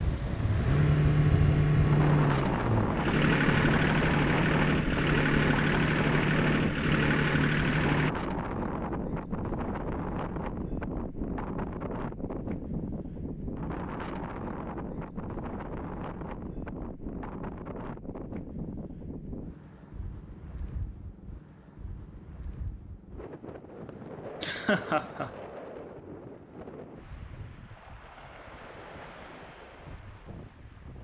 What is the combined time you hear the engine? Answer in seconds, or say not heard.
8 s.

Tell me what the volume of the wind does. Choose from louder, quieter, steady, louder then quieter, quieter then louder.
quieter.